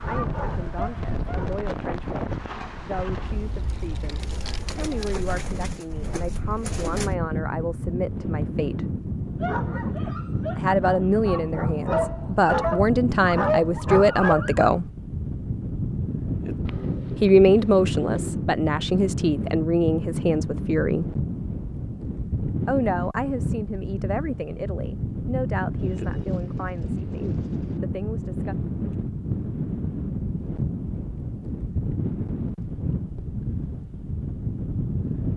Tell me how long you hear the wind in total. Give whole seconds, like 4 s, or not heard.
35 s.